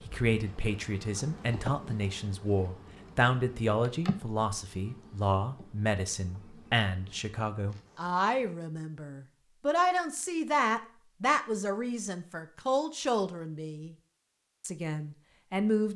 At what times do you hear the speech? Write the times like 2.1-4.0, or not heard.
0.0-13.9, 14.6-15.9.